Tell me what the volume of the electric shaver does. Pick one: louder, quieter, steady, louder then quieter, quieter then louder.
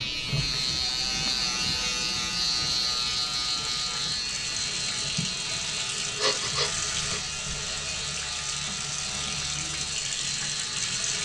quieter.